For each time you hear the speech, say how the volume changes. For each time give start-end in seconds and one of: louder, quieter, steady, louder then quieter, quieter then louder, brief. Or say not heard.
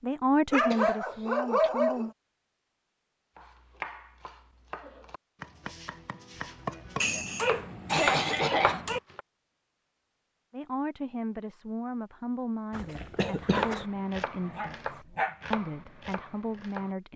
0.0-2.1 brief
10.5-17.1 steady.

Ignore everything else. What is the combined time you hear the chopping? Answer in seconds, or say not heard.
9 s.